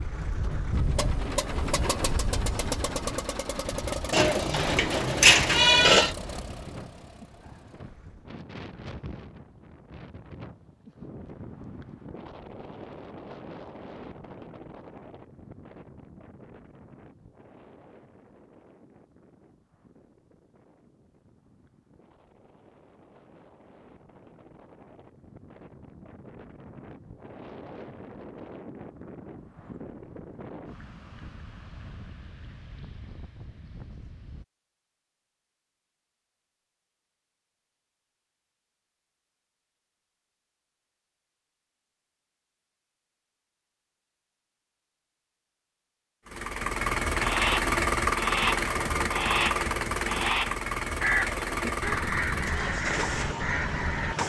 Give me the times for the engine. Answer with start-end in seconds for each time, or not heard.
0.0-8.3, 46.2-54.2.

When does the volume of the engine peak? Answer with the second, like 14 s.
48 s.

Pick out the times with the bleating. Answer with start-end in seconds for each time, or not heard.
4.1-6.2.